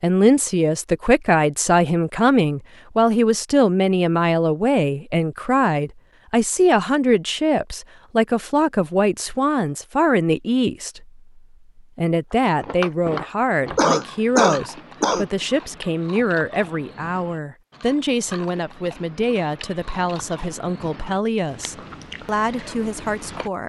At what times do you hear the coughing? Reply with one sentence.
You can hear the coughing from 13.8 to 15.2 s.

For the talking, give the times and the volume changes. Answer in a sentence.
The talking can be heard from 0.0 to 23.6 s, getting quieter.